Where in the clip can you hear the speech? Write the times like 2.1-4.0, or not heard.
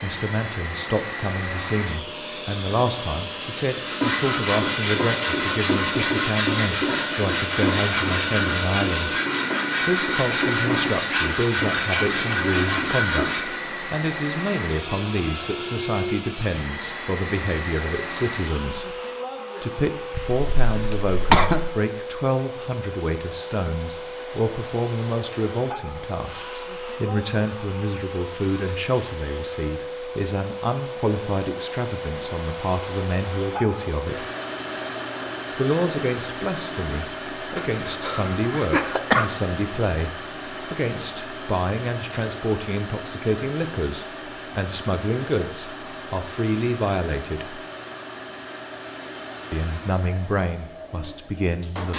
0.0-9.2, 9.8-19.0, 19.6-34.2, 35.5-47.6, 49.5-51.9.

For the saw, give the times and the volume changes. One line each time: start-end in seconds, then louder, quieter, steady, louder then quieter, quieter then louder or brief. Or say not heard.
3.8-13.6 steady.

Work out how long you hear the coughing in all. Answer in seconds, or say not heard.
3 s.